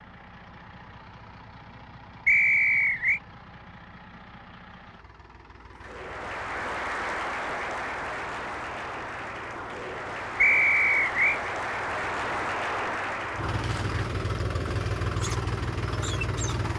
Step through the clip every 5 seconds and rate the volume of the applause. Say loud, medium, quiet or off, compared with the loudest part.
off, loud, loud, off.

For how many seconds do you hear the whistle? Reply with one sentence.
The whistle can be heard for 2 seconds in total.